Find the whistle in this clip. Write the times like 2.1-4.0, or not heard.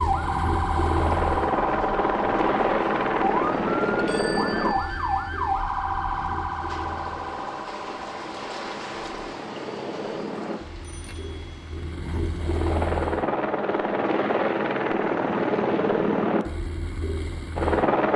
not heard.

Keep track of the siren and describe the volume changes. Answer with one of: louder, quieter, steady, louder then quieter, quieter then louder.
quieter.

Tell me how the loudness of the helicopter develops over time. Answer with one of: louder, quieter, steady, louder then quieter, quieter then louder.
quieter then louder.